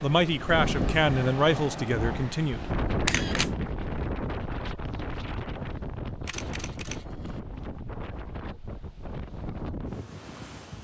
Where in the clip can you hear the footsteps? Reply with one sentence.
The footsteps can't be heard in this clip.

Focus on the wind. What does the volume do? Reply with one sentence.
The loudness of the wind goes down.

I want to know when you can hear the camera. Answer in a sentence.
You can hear the camera from 2.5 to 3.5 s and from 6.2 to 7.4 s.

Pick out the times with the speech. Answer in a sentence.
The speech can be heard from 0.0 to 2.6 s.